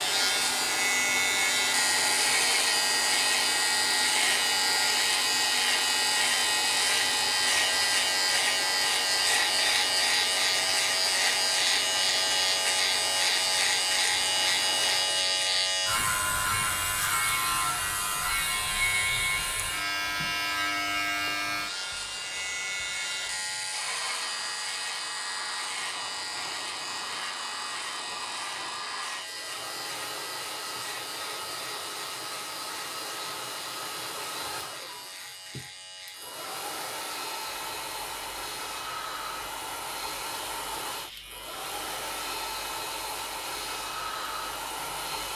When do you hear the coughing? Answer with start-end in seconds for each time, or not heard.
not heard.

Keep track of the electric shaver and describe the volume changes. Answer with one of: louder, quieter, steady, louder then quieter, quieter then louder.
quieter.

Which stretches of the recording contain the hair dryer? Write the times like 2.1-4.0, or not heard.
0.0-45.3.